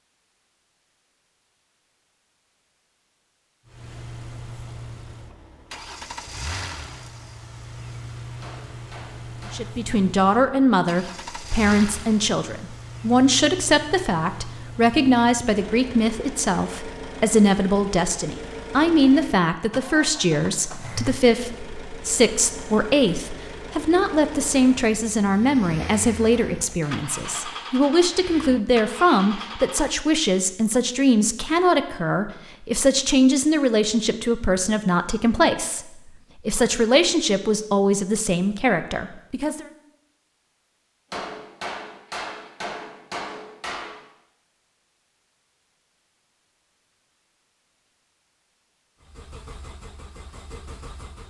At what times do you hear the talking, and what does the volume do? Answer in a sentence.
The talking can be heard from 9.5 to 39.7 s, at a steady volume.